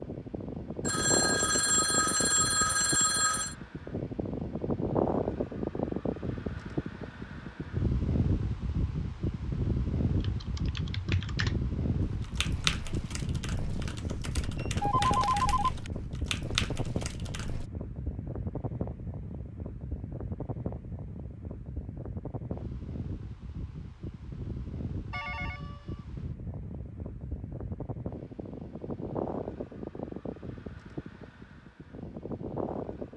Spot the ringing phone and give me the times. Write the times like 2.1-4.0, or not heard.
0.8-3.5, 14.6-15.7, 25.1-26.1.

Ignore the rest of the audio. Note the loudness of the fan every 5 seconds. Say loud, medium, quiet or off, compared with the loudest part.
loud, loud, loud, medium, medium, medium, medium.